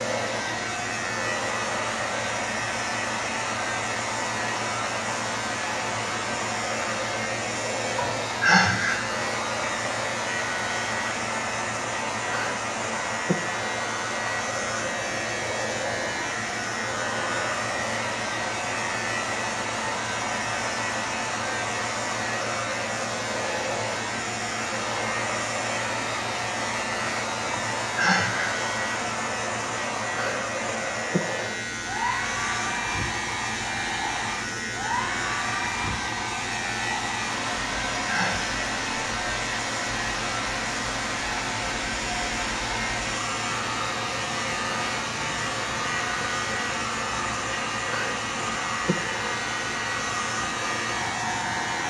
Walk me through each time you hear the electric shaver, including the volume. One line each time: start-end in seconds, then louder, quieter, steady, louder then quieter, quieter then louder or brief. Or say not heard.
0.0-51.8 steady.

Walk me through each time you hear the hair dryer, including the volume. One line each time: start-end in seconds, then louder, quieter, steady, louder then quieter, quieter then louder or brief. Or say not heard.
0.0-51.8 steady.